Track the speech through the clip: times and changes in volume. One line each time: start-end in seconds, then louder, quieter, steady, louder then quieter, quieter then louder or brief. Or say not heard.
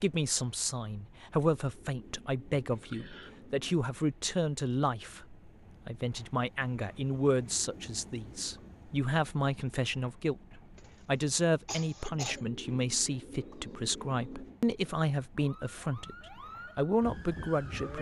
0.0-17.9 steady.